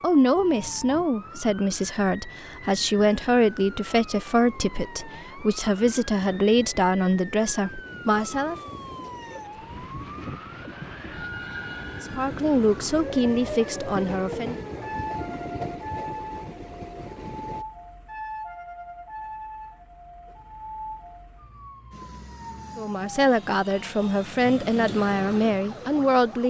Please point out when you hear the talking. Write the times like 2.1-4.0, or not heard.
0.0-8.6, 12.0-14.6, 22.8-26.4.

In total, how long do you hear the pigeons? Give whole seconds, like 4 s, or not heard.
not heard.